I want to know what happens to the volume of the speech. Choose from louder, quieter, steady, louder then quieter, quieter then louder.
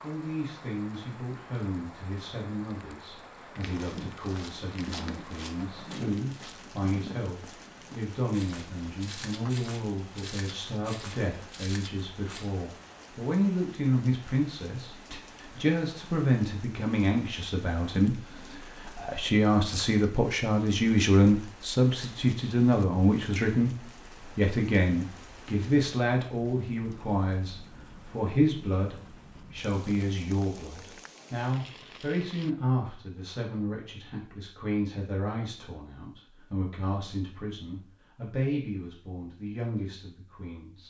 louder then quieter.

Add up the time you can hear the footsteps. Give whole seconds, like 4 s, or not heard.
9 s.